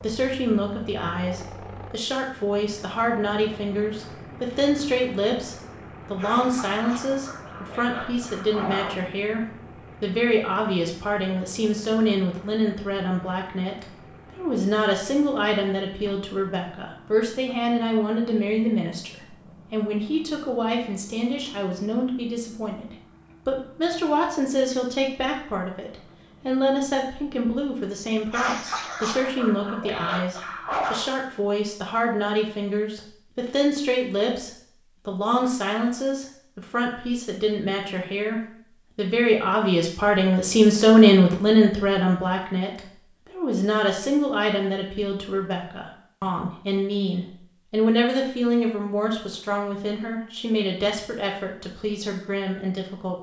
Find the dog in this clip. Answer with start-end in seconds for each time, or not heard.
6.2-8.9, 28.3-31.1.